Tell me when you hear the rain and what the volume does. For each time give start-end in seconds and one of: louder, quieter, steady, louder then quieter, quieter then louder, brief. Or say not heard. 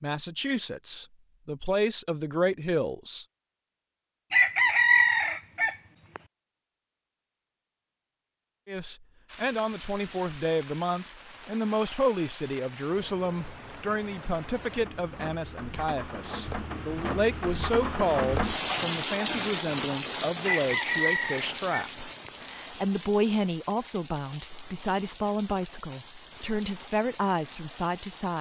9.2-28.3 louder then quieter.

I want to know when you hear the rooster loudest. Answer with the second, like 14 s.
5 s.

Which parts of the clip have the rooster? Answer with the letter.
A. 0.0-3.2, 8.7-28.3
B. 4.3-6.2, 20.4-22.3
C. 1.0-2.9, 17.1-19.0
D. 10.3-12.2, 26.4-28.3
B.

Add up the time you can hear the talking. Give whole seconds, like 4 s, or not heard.
23 s.